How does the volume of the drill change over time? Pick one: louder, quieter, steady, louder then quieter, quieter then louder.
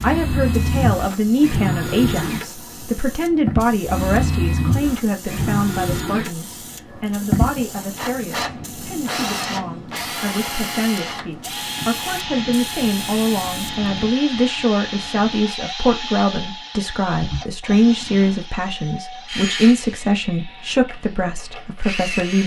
quieter.